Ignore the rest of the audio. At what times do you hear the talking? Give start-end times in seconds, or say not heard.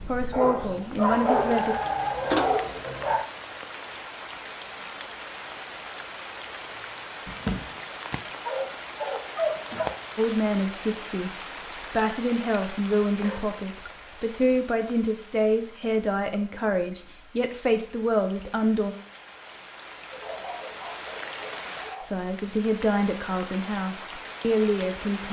0.0-1.8, 10.2-18.9, 22.0-25.2.